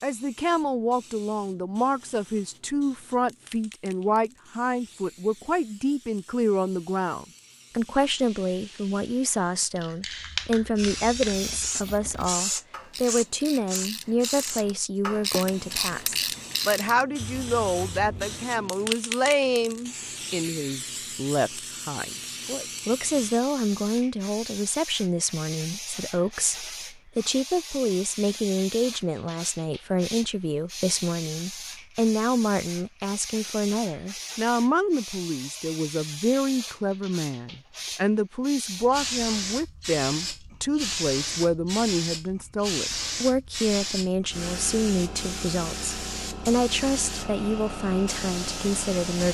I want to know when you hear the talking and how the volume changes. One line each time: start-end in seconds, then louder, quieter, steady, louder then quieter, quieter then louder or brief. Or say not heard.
0.0-49.2 steady.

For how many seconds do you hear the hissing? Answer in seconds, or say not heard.
49 s.